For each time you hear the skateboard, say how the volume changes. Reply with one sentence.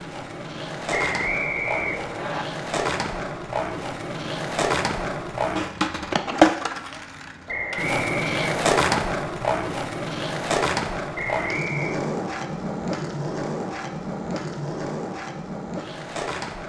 You can hear the skateboard from 0.0 to 16.6 s, getting louder then quieter.